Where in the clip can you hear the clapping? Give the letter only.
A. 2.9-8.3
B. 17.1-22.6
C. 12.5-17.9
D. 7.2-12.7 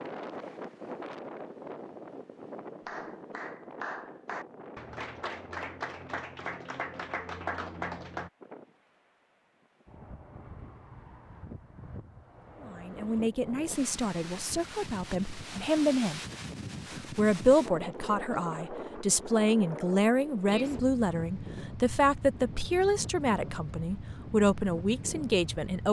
A.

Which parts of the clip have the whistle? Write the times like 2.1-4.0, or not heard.
not heard.